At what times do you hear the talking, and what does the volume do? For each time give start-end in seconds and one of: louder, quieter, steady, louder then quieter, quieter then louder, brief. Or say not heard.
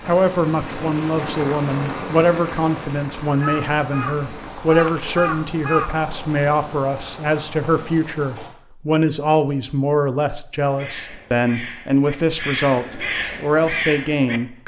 0.1-14.6 steady.